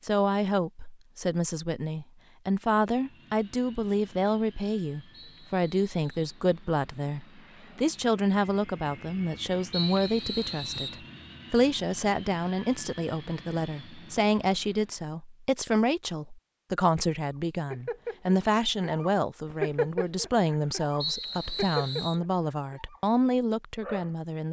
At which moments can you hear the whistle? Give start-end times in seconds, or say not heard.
5.1-6.5, 9.7-11.0, 21.0-22.2.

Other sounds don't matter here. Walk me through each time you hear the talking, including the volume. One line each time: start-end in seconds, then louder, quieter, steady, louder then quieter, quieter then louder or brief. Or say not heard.
0.0-24.4 steady.